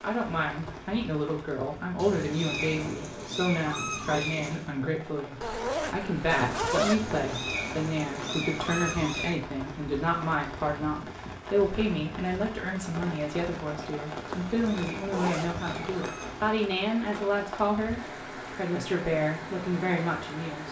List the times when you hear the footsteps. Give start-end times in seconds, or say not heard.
not heard.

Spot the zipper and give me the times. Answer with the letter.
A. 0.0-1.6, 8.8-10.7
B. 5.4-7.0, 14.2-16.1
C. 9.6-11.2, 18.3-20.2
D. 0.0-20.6
B.